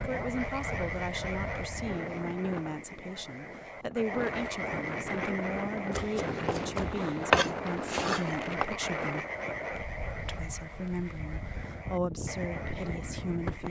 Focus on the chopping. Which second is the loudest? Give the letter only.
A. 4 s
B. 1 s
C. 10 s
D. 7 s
D.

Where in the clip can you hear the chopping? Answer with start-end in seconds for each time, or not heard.
5.9-8.7.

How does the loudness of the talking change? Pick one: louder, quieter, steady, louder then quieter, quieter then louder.
steady.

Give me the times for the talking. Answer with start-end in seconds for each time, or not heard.
0.0-9.2, 10.2-13.6.